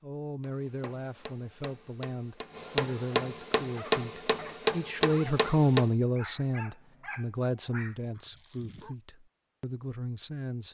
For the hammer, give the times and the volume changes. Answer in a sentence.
You can hear the hammer from 0.4 to 5.9 s, getting louder.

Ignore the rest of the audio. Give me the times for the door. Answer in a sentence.
The door can't be heard in this clip.